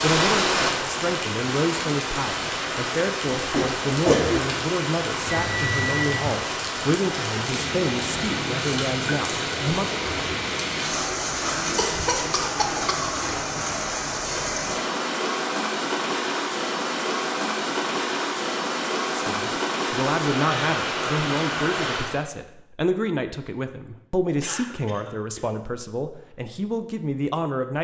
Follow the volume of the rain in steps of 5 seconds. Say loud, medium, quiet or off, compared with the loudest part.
loud, loud, loud, loud, loud, off.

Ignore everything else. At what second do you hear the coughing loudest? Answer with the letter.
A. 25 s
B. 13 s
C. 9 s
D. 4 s
D.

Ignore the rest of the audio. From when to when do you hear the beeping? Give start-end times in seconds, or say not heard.
5.2-6.3.